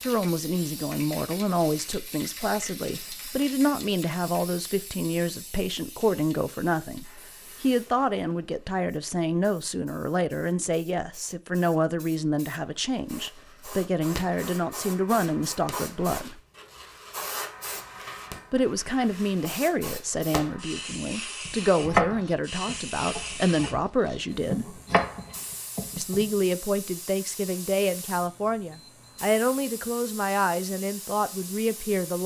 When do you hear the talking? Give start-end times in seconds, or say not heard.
0.0-16.4, 18.5-24.8, 25.9-32.2.